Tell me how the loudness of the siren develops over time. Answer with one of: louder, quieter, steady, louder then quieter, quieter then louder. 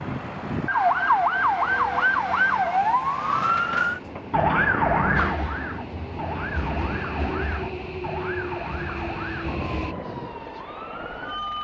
quieter.